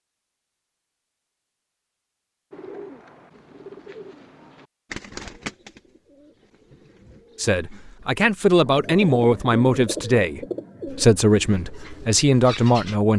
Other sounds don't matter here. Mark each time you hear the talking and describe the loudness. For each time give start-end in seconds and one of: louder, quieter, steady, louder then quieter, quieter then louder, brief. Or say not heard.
7.3-13.1 steady.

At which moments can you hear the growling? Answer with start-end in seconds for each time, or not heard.
not heard.